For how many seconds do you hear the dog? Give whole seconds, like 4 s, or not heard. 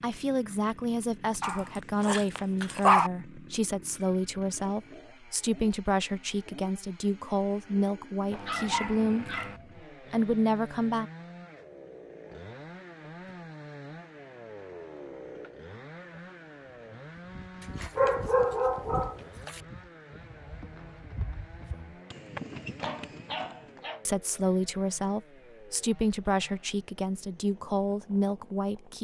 6 s.